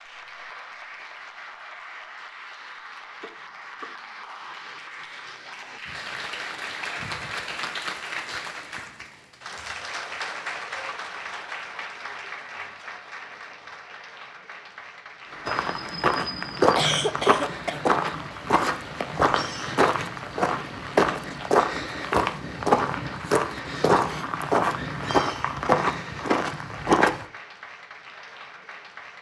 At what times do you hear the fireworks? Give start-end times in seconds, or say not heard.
not heard.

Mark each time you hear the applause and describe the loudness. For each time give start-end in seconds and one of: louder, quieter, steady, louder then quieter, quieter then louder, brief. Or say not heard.
0.0-29.1 louder then quieter.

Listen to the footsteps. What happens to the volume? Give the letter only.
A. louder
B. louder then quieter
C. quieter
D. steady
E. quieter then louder
D.